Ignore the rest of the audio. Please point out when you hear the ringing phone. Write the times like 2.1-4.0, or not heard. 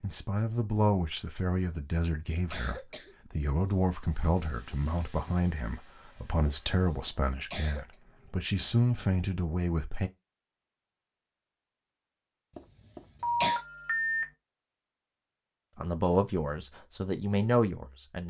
13.2-14.2.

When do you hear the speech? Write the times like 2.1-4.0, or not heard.
0.0-10.1, 15.8-18.2.